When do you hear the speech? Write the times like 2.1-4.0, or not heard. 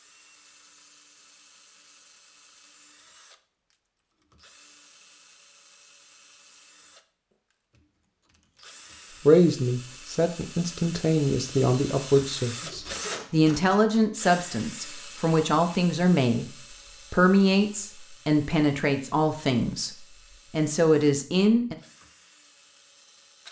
9.2-16.5, 17.1-21.8.